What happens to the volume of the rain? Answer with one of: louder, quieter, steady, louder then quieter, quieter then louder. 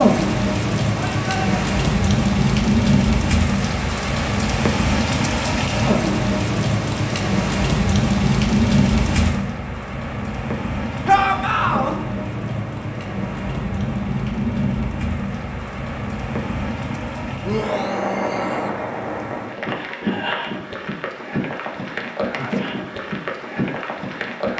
quieter.